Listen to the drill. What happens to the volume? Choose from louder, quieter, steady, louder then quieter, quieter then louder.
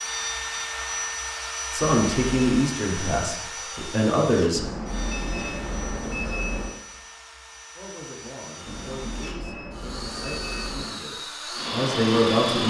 quieter then louder.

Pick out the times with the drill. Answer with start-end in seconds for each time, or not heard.
0.0-12.6.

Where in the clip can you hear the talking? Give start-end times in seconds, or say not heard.
1.7-4.7, 7.8-12.6.